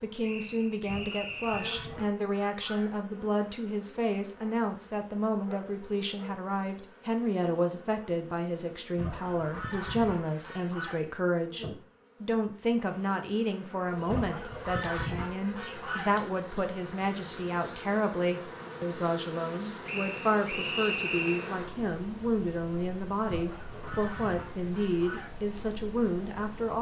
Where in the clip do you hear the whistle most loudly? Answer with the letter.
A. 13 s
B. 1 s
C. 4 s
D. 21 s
D.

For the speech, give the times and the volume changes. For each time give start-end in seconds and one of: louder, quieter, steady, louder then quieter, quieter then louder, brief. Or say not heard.
0.0-26.7 steady.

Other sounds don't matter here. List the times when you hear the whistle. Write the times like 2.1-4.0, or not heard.
0.2-1.9, 19.9-21.5.